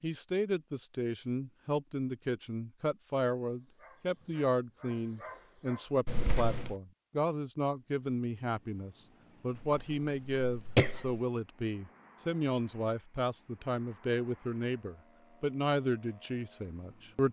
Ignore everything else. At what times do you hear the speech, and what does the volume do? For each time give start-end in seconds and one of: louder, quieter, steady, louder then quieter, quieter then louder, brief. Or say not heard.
0.0-17.2 steady.